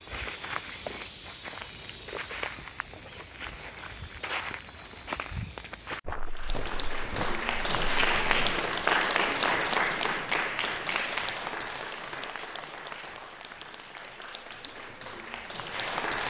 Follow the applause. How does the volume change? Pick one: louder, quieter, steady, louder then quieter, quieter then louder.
quieter.